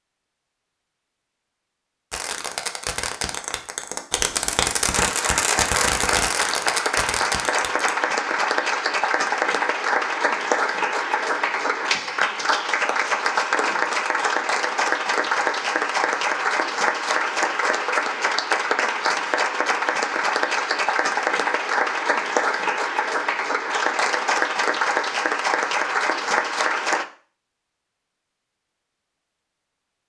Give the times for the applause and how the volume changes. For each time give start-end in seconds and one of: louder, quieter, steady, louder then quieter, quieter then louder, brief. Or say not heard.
4.9-27.1 steady.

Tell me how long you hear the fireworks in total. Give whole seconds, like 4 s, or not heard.
6 s.